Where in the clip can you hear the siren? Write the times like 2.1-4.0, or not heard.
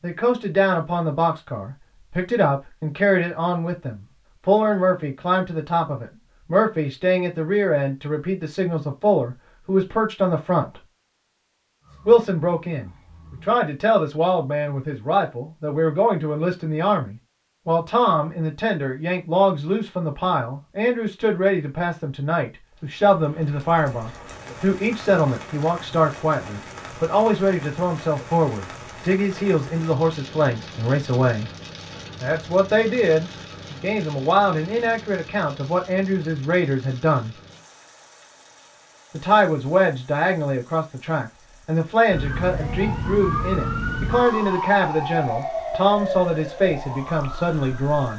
11.8-13.6, 42.1-48.1.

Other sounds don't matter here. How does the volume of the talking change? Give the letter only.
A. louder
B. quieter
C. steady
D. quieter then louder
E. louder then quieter
C.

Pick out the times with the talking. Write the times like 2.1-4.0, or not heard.
0.0-10.8, 12.1-31.5, 32.2-37.4, 39.1-48.1.